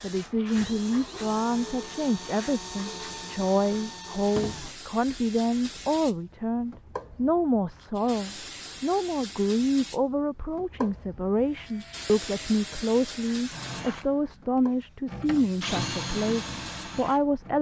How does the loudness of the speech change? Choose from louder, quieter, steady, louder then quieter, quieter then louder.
steady.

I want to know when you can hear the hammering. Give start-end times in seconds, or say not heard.
not heard.